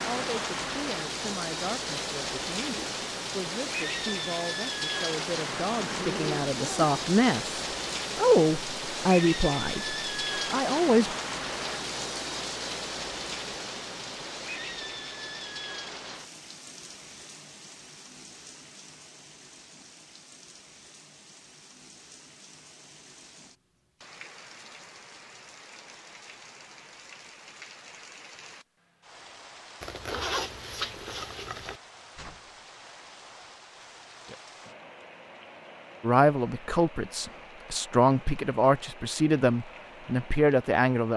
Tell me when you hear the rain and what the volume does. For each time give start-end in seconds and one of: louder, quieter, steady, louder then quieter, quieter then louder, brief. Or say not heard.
0.0-41.1 quieter.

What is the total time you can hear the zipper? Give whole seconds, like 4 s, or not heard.
3 s.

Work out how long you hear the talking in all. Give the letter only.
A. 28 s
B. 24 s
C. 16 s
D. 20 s
C.